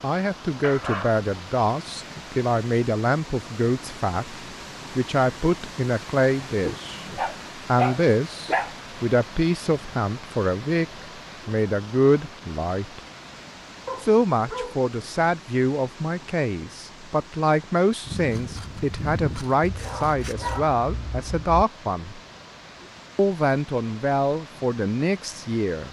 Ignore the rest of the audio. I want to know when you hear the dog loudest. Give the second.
8 s.